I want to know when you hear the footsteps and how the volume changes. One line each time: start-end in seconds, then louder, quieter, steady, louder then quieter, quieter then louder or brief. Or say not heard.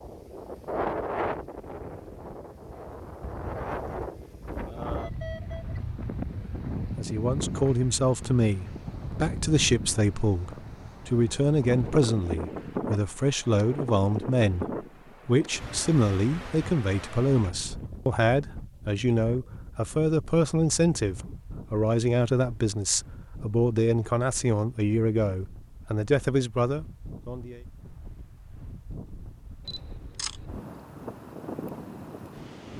not heard.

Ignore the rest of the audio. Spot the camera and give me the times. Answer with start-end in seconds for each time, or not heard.
29.6-30.4.